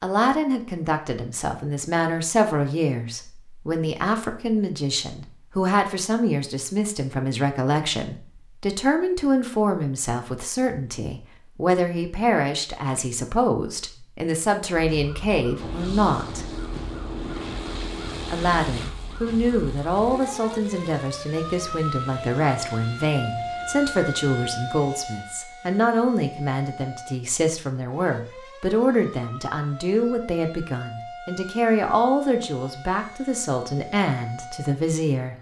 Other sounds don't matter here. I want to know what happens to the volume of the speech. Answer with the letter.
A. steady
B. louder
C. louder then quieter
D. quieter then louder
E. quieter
A.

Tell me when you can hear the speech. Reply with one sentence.
You can hear the speech from 0.0 to 16.4 s and from 18.3 to 35.3 s.